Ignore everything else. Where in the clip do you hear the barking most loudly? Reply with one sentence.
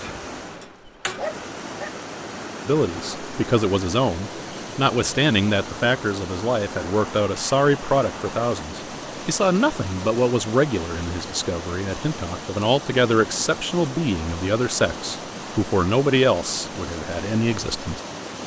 The loudest moment of the barking is at 1 second.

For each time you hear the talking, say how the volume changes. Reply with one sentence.
You can hear the talking from 2.6 to 18.0 s, at a steady volume.